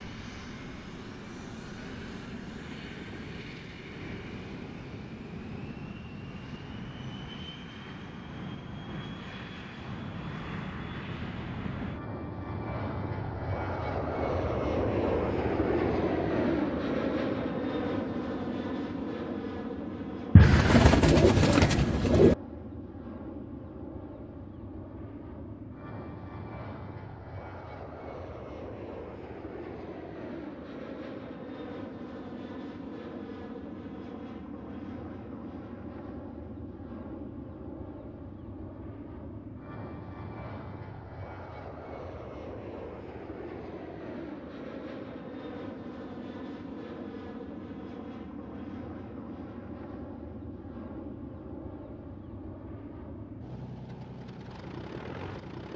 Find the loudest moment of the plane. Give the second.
16 s.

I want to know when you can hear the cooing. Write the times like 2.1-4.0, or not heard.
20.4-22.4.